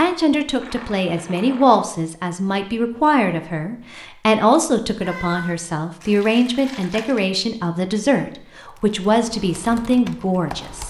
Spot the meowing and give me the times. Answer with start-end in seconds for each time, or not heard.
5.0-5.5.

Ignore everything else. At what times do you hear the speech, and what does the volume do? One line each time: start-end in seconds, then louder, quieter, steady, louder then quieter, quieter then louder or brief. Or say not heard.
0.0-10.8 steady.